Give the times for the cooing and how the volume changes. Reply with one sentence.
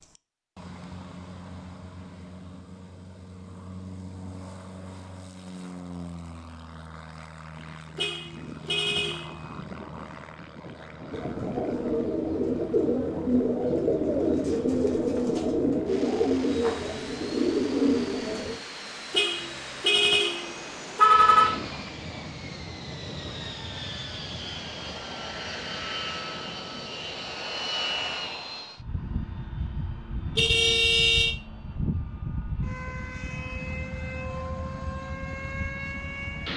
The cooing can be heard from 11.1 to 18.6 s, at a steady volume.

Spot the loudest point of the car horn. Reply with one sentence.
The volume of the car horn peaks at 21 seconds.